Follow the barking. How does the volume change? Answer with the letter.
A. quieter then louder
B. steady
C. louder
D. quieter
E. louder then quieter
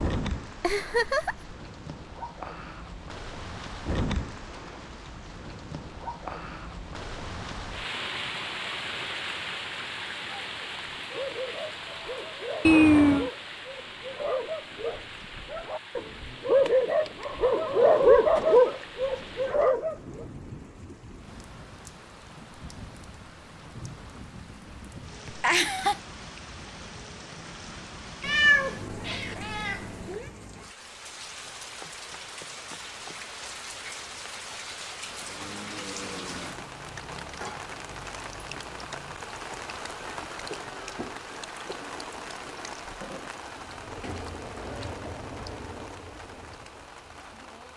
C.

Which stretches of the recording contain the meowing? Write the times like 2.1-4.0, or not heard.
12.7-13.3, 28.2-30.2.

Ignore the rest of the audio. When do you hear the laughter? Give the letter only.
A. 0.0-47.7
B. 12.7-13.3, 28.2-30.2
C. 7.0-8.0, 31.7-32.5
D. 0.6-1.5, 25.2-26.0
D.